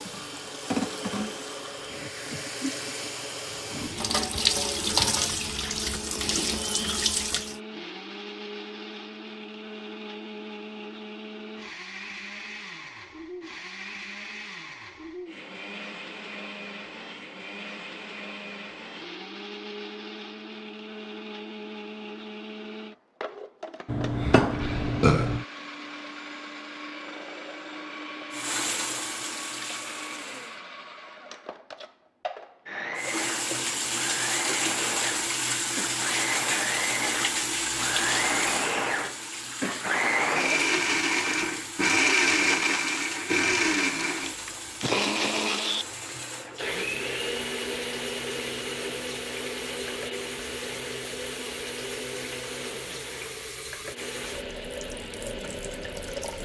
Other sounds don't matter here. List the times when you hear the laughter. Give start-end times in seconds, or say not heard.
not heard.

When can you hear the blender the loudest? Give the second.
42 s.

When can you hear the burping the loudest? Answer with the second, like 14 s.
25 s.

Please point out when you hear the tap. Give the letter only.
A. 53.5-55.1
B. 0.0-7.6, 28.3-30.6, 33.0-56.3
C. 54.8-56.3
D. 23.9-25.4
B.